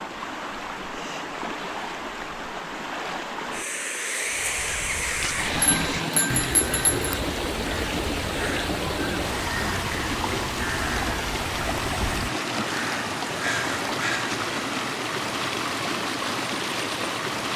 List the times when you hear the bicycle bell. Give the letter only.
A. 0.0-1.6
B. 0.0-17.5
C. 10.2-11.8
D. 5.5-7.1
D.